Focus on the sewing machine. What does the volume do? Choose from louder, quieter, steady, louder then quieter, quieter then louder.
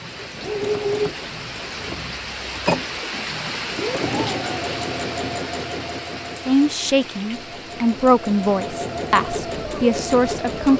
quieter then louder.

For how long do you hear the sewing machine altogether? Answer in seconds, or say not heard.
11 s.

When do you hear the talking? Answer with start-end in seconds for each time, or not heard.
6.5-10.7.